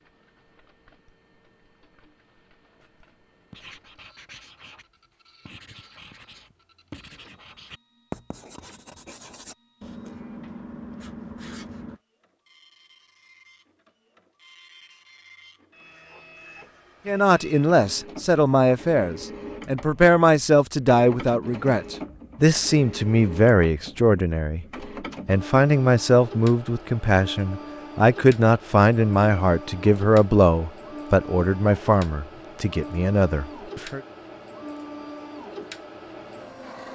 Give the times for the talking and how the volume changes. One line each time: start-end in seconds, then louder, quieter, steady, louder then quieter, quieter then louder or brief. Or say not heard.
17.1-34.0 steady.